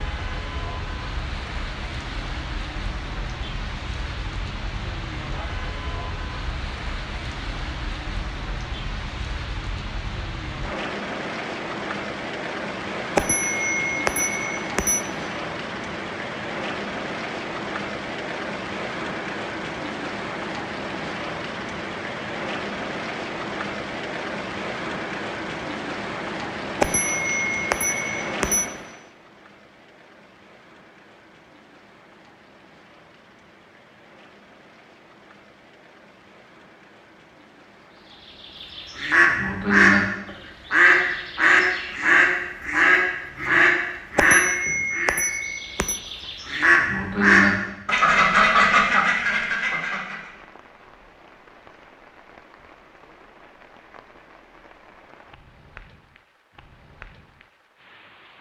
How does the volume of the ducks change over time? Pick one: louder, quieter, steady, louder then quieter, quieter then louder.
steady.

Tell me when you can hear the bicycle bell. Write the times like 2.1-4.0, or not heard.
13.2-15.1, 26.8-28.7, 44.1-46.0.